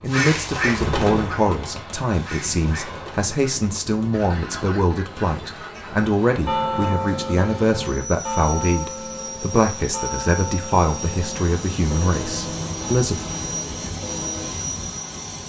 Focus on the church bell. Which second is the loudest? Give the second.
7 s.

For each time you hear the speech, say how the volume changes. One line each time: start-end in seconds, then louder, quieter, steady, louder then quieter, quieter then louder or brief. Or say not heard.
0.0-13.2 steady.